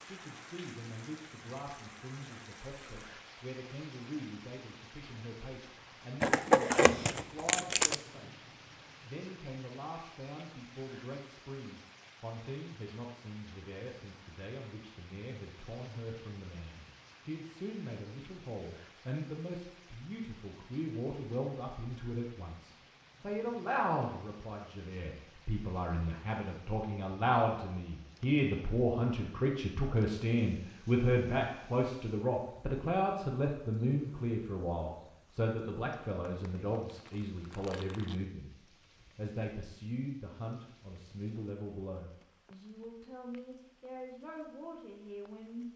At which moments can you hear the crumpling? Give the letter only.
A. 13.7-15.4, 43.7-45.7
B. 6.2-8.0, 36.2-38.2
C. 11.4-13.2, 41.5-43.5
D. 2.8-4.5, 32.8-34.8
B.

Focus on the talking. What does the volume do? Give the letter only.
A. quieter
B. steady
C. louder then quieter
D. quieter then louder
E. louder
C.